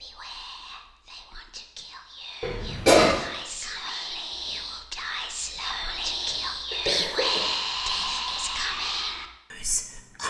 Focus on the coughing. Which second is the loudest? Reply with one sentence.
The volume of the coughing peaks at 3 seconds.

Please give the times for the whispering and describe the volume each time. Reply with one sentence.
You can hear the whispering from 0.0 to 10.2 s, getting louder.